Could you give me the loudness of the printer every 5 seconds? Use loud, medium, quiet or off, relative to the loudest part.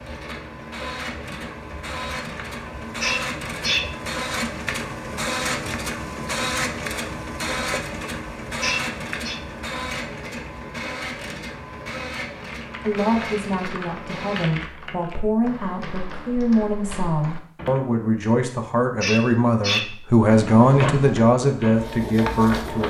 loud, loud, medium, off, loud.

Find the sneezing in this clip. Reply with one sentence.
You can hear the sneezing from 3.0 to 3.9 s, from 8.6 to 9.4 s and from 19.0 to 19.9 s.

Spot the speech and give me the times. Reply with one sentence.
You can hear the speech from 12.8 to 22.8 s.